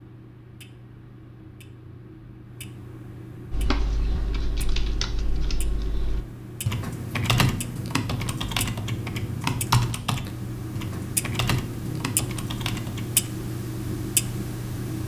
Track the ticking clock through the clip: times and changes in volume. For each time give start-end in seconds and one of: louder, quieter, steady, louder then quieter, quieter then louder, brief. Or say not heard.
0.0-15.0 louder.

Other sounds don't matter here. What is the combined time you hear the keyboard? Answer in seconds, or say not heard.
10 s.